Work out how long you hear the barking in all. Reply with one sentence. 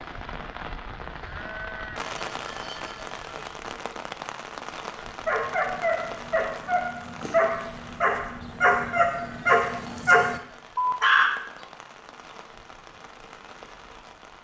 The barking can be heard for 6 seconds in total.